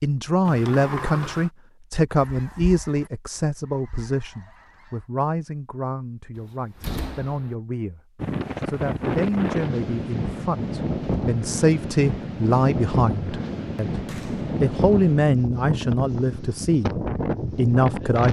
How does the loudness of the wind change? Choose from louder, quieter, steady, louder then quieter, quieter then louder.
steady.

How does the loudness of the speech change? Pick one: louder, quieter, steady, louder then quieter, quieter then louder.
quieter then louder.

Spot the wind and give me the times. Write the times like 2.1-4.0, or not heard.
8.2-18.2.